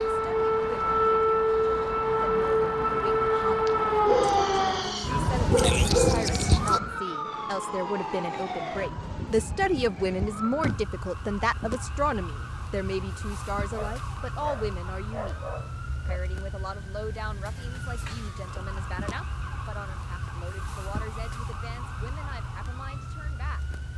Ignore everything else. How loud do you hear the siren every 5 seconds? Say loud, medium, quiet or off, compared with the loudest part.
loud, medium, quiet, quiet, quiet.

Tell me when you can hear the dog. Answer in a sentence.
The dog can be heard from 4.0 to 6.8 s and from 13.7 to 16.2 s.